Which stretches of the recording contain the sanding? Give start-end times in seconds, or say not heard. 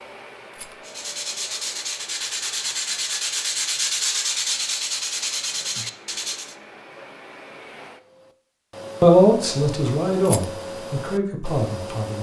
0.8-6.5.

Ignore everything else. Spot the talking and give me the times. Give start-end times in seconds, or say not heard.
9.0-12.1.